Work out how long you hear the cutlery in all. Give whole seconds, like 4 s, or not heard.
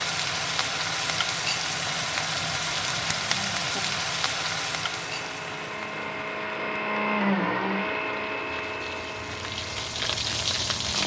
not heard.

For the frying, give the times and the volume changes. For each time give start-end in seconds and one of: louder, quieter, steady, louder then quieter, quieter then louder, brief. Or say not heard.
0.0-11.0 quieter then louder.